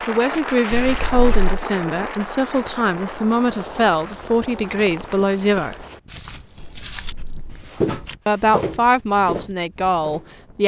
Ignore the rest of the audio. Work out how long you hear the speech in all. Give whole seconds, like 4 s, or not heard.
8 s.